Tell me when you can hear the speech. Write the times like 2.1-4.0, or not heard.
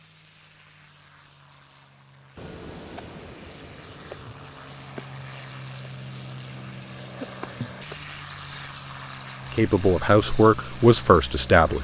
9.5-11.7.